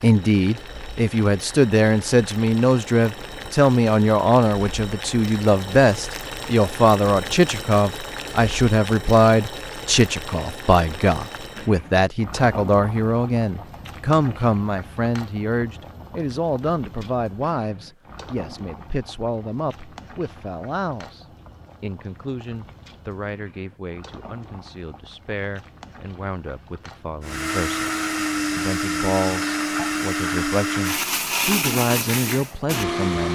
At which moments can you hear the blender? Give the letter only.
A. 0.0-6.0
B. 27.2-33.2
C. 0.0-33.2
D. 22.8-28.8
B.